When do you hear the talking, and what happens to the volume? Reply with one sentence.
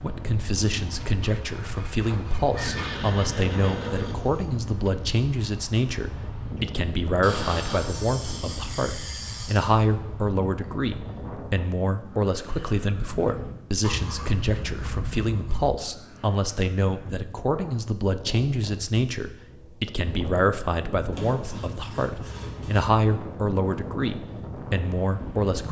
The talking can be heard from 0.0 to 25.6 s, at a steady volume.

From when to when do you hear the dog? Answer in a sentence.
You can't hear the dog here.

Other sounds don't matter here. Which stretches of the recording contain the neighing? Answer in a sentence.
The neighing can be heard from 2.5 to 4.5 s.